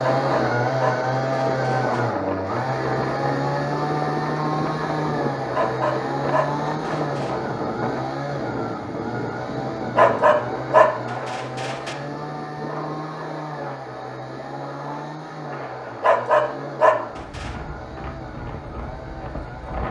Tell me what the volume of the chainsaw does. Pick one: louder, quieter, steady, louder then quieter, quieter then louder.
quieter.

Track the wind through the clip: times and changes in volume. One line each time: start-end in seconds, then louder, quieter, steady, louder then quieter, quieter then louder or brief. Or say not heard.
0.0-19.8 quieter.